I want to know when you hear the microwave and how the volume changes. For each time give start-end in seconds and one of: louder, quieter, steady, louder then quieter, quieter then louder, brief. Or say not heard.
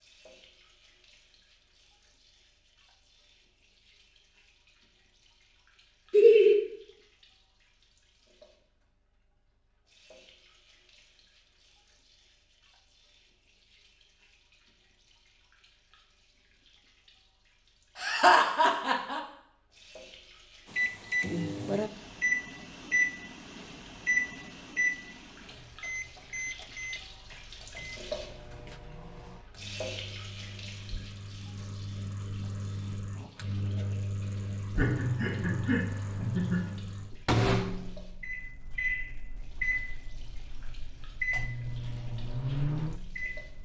20.7-43.6 quieter then louder.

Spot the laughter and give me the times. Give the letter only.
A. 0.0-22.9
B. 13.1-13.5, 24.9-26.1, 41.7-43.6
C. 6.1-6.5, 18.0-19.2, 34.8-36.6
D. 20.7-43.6
C.